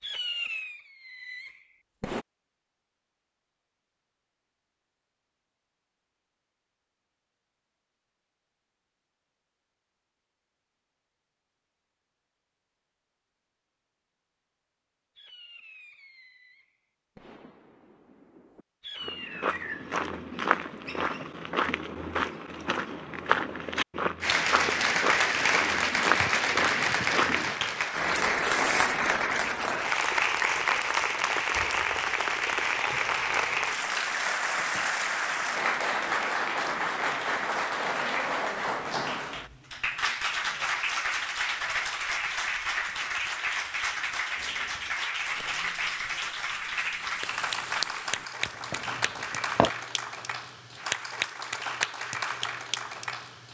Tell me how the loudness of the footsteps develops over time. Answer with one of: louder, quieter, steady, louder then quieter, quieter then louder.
steady.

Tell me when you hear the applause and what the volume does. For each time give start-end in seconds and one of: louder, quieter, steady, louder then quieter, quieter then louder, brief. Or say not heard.
24.2-53.4 quieter.